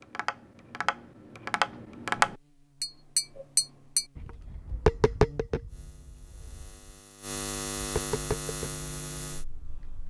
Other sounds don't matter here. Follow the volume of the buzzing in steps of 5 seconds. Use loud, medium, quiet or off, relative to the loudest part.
quiet, loud.